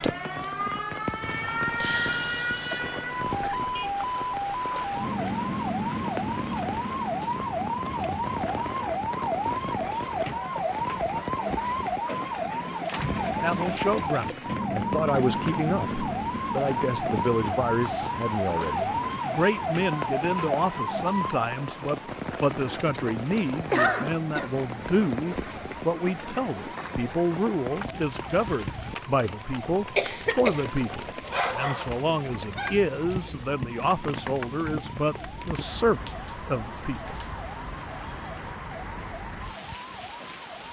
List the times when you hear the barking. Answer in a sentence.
You can hear the barking from 31.2 to 33.5 s.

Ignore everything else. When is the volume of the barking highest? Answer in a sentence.
The loudest moment of the barking is at 32 seconds.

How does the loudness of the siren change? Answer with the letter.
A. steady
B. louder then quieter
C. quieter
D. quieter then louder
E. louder
C.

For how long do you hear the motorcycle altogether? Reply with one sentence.
You can't hear the motorcycle here.